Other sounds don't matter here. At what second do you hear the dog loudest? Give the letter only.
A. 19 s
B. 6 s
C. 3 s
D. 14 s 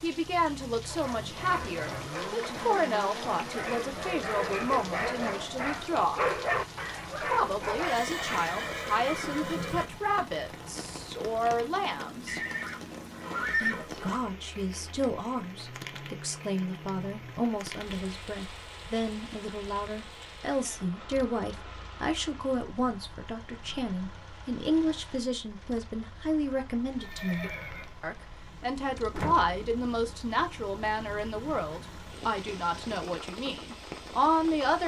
B.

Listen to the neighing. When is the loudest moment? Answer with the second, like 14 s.
14 s.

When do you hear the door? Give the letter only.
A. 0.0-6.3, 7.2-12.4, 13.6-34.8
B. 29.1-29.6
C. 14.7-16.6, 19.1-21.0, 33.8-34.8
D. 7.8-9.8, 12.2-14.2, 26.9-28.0
B.